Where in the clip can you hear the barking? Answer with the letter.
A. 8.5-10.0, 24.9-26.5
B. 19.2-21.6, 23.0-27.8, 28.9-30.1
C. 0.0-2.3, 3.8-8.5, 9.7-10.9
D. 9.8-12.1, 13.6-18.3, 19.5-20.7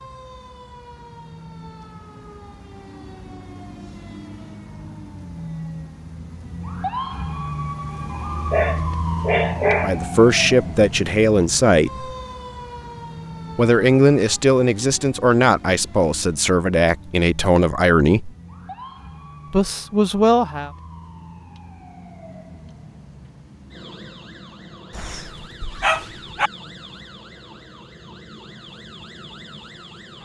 A.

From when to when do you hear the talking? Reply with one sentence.
You can hear the talking from 9.8 to 12.1 s, from 13.6 to 18.3 s and from 19.5 to 20.7 s.